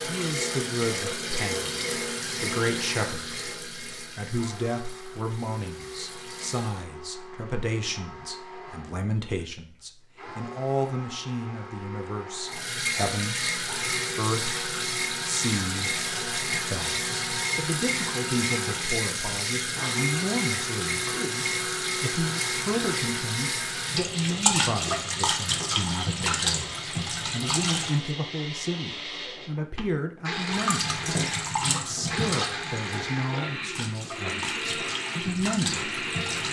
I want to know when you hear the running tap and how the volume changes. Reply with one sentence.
The running tap can be heard from 0.0 to 6.8 s, getting quieter; from 12.4 to 28.1 s, at a steady volume; and from 30.3 to 36.4 s, getting quieter then louder.